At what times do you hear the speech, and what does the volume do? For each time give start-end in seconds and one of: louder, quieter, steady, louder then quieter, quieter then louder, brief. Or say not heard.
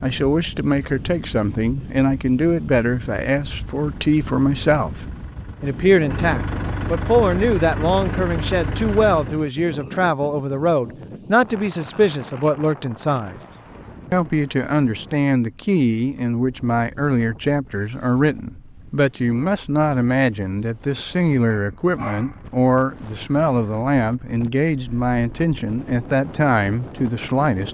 0.0-13.4 steady
14.1-27.7 steady.